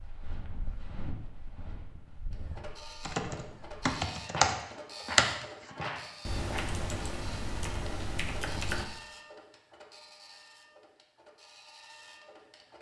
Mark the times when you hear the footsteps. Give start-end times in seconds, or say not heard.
0.0-6.8.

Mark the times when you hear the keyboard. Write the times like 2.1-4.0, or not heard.
3.0-8.8.